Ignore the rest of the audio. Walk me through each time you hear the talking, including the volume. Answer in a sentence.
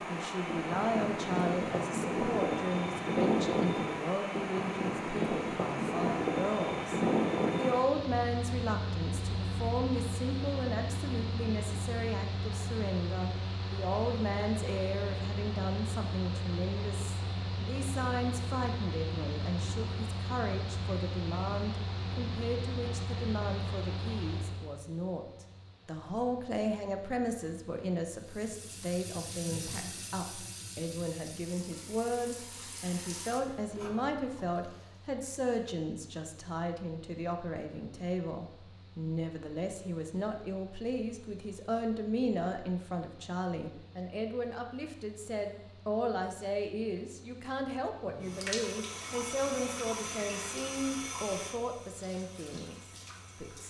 You can hear the talking from 0.1 to 53.6 s, at a steady volume.